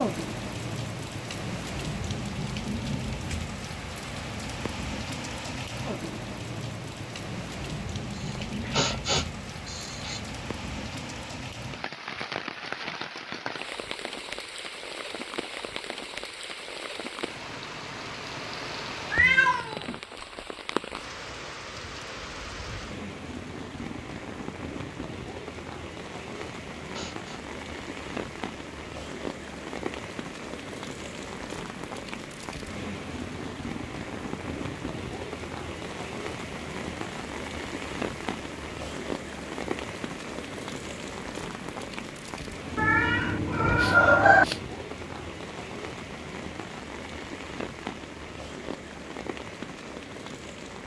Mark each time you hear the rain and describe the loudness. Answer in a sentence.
You can hear the rain from 0.0 to 50.8 s, at a steady volume.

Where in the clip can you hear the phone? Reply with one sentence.
The phone can't be heard in this clip.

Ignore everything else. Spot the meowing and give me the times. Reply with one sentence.
You can hear the meowing from 8.5 to 9.0 s, from 19.1 to 20.0 s and from 42.8 to 44.5 s.